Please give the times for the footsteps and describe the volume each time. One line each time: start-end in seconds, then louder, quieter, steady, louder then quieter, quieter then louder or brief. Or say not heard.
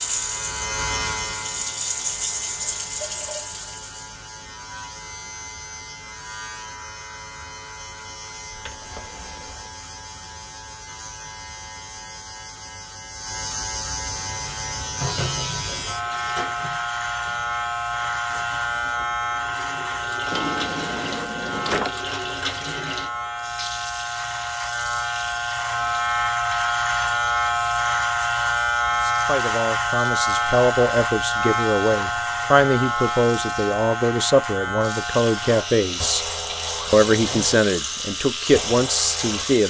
not heard.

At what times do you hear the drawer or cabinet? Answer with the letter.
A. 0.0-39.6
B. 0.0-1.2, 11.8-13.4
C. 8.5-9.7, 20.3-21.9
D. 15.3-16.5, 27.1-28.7
C.